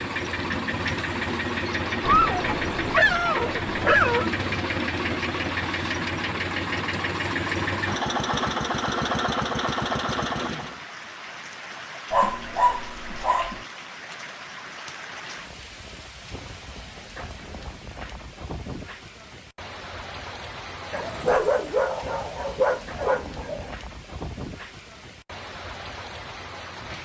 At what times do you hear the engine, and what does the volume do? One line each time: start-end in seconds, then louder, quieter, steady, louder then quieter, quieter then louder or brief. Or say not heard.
0.0-10.8 steady.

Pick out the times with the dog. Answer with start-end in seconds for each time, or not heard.
2.0-4.3, 12.1-13.7, 20.9-23.8.